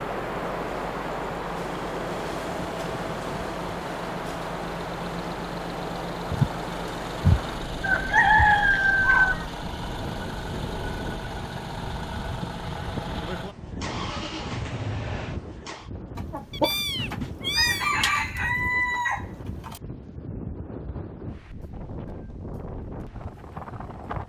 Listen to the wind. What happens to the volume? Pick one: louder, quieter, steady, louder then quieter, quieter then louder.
quieter.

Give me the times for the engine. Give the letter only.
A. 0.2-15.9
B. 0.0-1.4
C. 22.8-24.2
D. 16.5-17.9
A.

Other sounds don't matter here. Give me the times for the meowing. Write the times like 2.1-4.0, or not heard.
16.5-17.9.